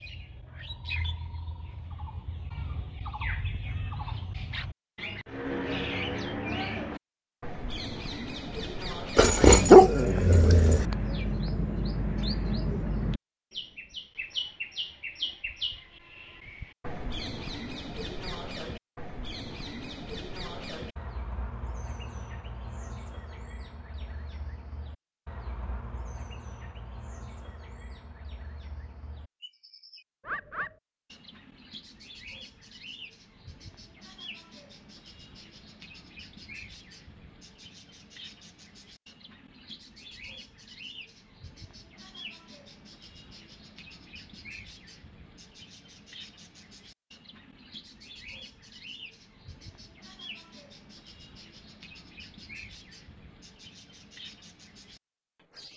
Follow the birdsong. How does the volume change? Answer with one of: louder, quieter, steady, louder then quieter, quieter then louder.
quieter.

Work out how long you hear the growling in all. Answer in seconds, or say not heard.
2 s.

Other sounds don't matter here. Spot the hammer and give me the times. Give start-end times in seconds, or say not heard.
not heard.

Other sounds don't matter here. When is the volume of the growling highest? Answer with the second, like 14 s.
10 s.